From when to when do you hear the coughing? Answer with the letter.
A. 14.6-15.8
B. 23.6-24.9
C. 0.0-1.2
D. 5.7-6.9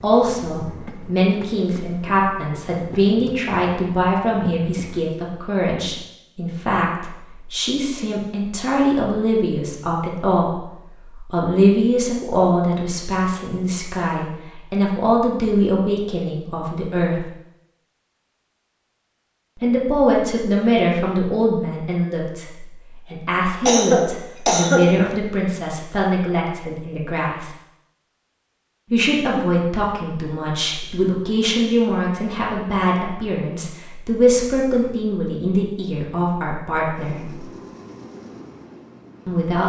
B.